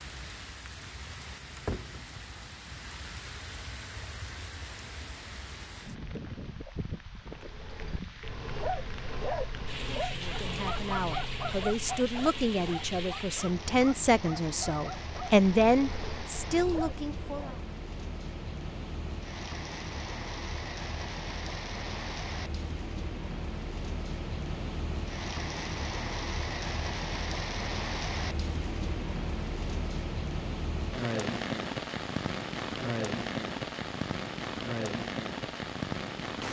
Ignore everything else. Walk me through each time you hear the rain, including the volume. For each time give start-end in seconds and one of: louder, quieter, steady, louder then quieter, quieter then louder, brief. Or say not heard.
0.0-36.4 louder.